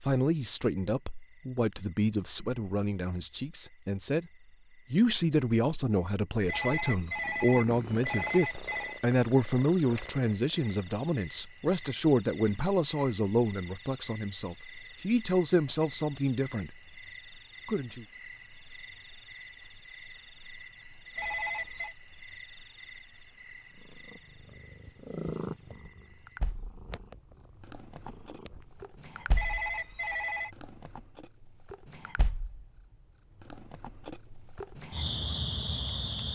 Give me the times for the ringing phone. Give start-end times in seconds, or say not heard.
6.5-9.0, 21.1-21.9, 29.4-30.5.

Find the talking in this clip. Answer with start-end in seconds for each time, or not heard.
0.0-4.2, 4.9-16.7, 17.6-18.1.